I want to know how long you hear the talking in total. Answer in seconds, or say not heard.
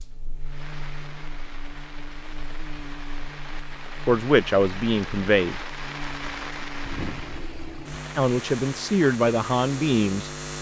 4 s.